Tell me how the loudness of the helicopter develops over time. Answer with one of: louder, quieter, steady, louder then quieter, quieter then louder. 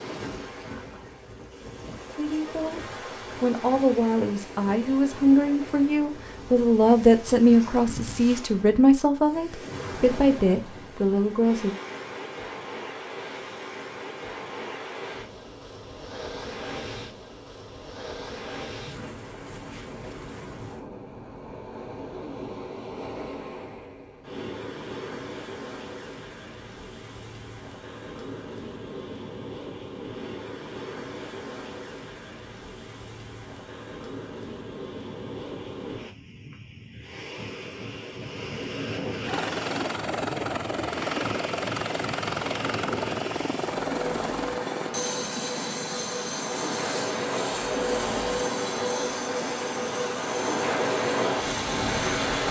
quieter.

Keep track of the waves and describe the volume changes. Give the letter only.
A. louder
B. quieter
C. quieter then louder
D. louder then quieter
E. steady
A.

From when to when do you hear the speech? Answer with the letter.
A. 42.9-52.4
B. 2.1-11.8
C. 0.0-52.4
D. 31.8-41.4
B.